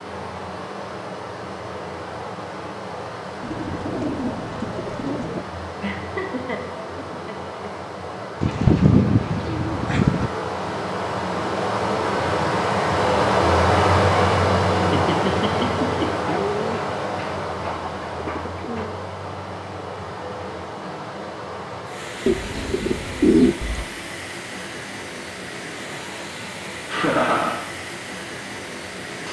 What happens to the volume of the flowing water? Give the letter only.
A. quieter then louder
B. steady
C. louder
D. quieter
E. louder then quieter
E.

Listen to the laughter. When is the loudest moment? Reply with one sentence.
The volume of the laughter peaks at 27 seconds.